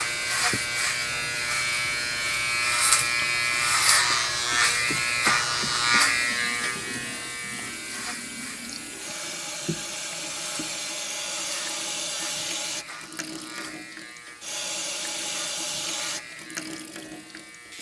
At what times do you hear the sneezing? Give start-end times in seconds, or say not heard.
not heard.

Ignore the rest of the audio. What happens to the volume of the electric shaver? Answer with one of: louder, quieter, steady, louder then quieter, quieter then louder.
quieter.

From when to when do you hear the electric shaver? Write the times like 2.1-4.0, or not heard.
0.0-17.7.